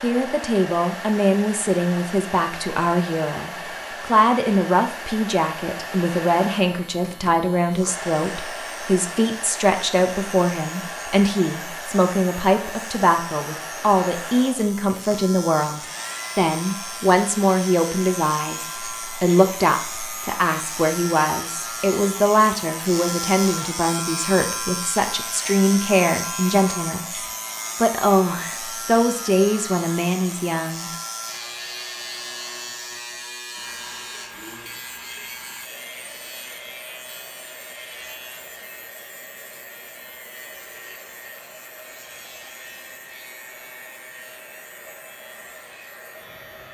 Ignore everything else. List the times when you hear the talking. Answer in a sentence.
You can hear the talking from 0.0 to 30.9 s.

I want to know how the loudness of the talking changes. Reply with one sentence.
The loudness of the talking stays about the same.